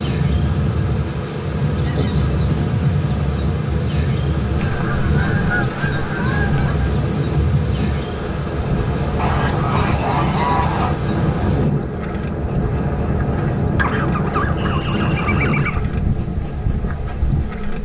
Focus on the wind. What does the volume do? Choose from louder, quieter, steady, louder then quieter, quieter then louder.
steady.